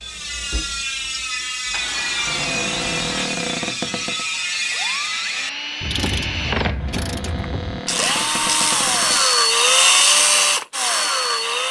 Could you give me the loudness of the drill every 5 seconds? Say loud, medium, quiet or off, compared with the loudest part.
quiet, loud, loud.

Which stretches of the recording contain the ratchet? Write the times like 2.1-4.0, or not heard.
0.0-9.9.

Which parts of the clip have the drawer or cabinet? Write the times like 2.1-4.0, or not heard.
2.2-4.2, 6.8-9.3.